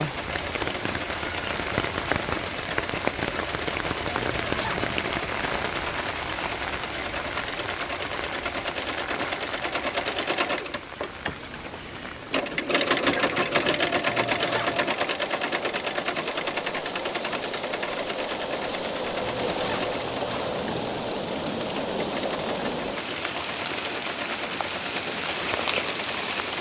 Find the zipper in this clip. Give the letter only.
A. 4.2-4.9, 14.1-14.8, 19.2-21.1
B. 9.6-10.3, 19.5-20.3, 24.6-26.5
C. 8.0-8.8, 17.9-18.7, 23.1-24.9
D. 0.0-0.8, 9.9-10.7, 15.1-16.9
A.